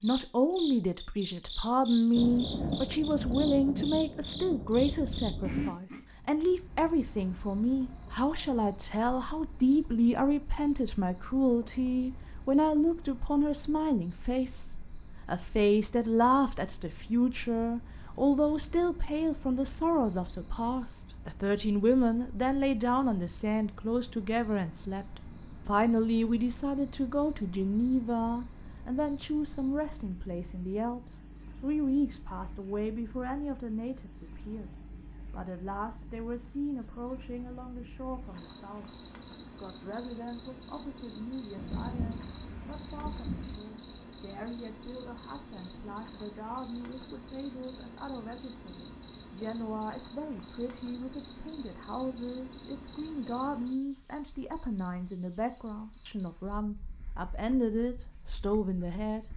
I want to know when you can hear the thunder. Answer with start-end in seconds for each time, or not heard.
2.1-5.7, 41.5-43.6.